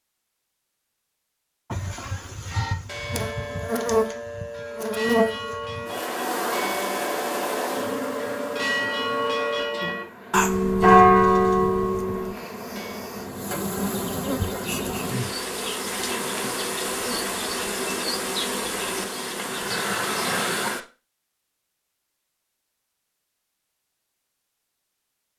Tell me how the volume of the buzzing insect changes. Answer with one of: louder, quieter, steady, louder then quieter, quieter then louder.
quieter then louder.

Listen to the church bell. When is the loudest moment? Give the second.
11 s.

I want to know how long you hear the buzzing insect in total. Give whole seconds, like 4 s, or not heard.
19 s.